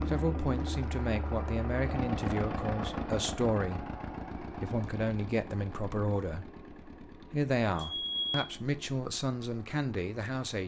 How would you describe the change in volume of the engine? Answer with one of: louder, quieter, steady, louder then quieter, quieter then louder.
quieter.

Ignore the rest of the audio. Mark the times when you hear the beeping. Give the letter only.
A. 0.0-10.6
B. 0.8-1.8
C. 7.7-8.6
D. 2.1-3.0
C.